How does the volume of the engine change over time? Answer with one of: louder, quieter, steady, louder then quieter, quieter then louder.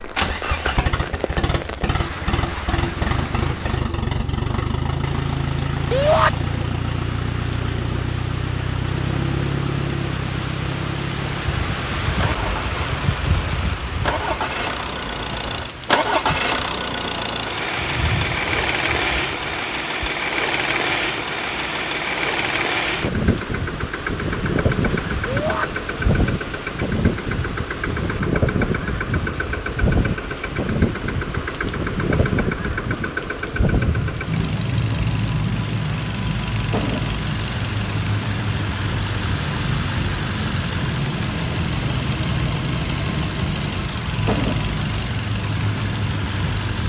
steady.